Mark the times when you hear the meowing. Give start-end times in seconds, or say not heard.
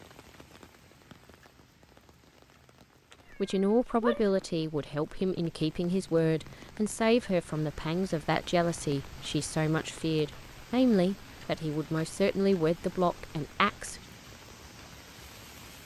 3.1-4.3.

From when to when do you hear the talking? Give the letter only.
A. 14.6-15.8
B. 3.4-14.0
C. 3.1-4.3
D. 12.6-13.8
B.